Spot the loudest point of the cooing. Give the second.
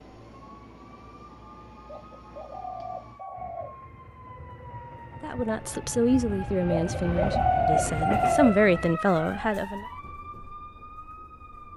8 s.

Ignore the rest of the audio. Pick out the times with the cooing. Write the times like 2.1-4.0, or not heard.
1.9-3.8, 7.0-8.6.